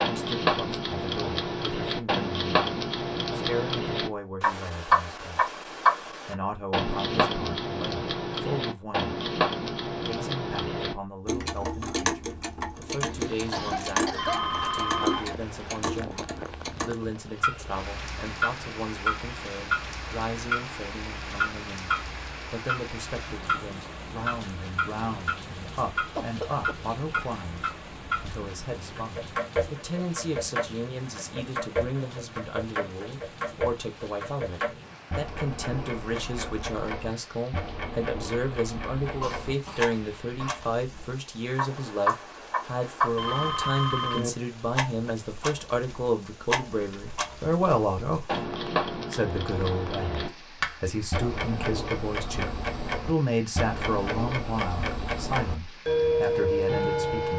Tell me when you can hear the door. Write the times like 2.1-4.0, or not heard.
not heard.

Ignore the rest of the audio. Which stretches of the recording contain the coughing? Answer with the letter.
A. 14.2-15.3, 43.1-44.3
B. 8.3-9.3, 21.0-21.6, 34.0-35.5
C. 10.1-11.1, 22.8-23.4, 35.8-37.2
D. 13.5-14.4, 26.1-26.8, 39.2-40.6
D.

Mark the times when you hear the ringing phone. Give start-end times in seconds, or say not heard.
14.2-15.3, 43.1-44.3.